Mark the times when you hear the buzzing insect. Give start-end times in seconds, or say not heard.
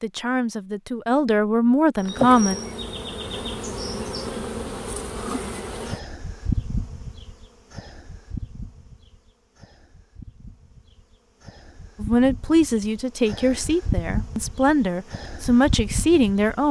2.0-16.6.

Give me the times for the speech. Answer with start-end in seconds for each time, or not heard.
0.0-2.5, 12.0-16.6.